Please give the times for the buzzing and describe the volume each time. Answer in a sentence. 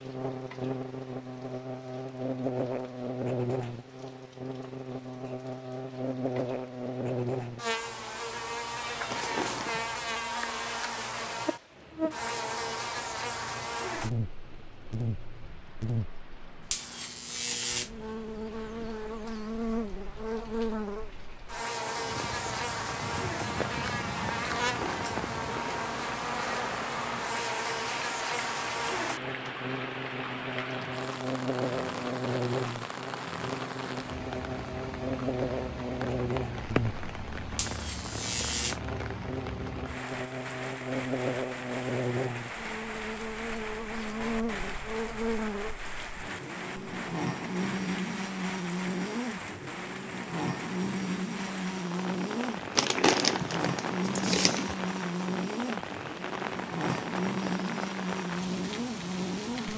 The buzzing can be heard from 0.0 to 59.7 s, at a steady volume.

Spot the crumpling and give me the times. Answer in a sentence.
The crumpling can be heard from 9.1 to 9.8 s, from 24.6 to 25.1 s and from 52.8 to 54.8 s.